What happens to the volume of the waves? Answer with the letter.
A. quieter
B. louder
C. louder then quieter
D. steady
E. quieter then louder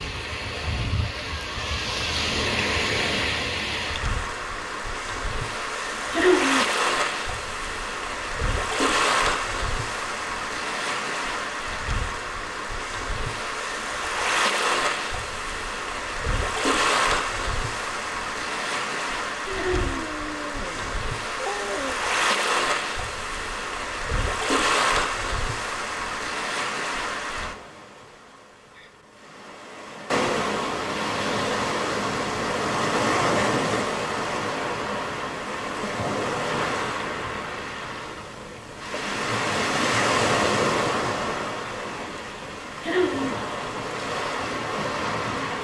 D.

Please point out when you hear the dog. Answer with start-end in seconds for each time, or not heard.
19.4-22.1.